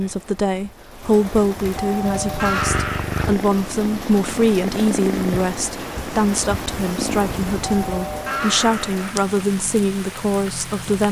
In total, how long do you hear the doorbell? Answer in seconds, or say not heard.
3 s.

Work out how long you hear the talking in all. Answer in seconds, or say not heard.
11 s.